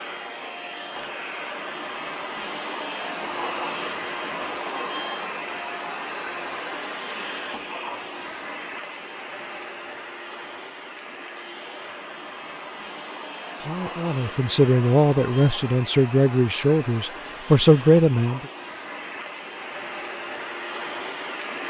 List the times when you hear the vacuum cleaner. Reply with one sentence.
You can hear the vacuum cleaner from 0.0 to 21.6 s.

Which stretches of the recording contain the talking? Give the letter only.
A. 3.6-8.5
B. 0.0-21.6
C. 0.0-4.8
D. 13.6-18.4
D.